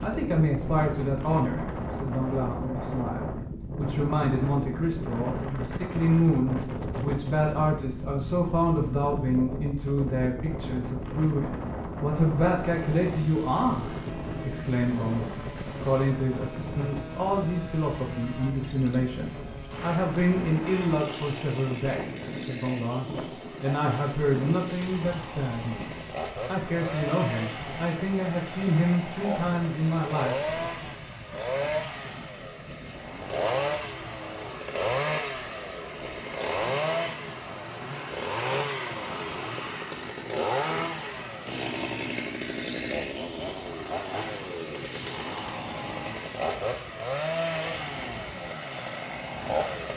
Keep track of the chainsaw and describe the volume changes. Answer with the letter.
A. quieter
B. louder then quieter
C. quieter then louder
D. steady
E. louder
E.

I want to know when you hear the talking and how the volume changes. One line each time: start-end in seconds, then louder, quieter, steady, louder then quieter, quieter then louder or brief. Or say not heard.
0.0-30.6 steady.